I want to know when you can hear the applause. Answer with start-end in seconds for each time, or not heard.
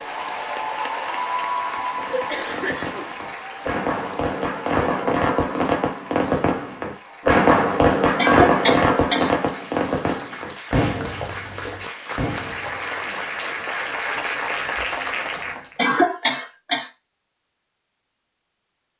0.0-15.8.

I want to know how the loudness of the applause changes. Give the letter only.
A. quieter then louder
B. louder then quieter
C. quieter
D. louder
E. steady
A.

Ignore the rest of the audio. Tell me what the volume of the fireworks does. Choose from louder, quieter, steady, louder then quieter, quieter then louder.
louder then quieter.